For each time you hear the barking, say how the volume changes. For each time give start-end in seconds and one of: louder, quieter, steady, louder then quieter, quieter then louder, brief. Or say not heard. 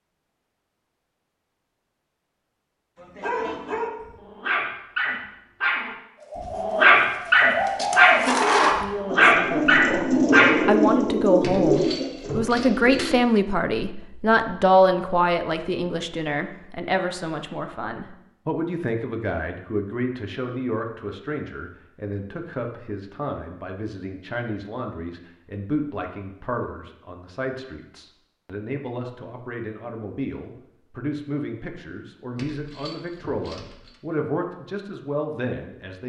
3.0-10.7 louder.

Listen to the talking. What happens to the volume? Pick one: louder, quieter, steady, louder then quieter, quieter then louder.
quieter.